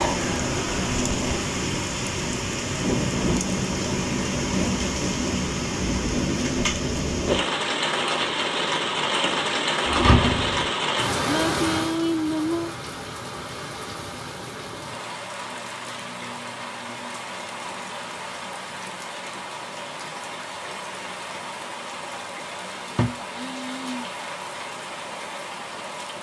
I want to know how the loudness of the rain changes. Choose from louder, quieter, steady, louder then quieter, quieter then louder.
quieter.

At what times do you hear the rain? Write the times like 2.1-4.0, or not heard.
0.0-26.1.